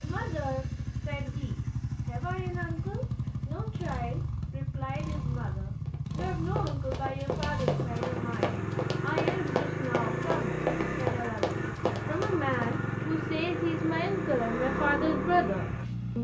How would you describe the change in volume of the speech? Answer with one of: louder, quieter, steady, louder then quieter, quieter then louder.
louder.